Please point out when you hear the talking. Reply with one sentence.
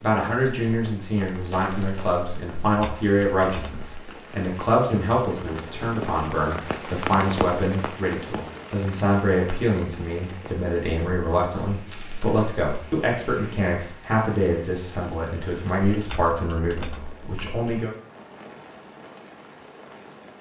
The talking can be heard from 0.0 to 17.9 s.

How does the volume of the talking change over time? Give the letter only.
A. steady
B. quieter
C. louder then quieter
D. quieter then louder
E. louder
A.